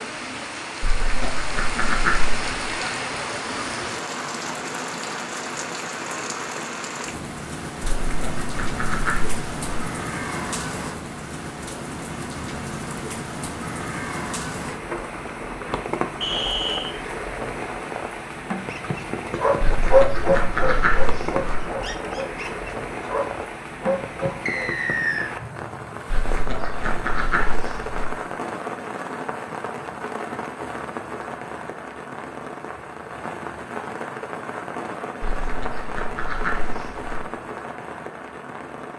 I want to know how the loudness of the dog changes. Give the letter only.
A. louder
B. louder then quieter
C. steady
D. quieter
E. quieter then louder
E.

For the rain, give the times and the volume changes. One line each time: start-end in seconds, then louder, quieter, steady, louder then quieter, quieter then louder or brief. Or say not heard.
0.0-38.9 steady.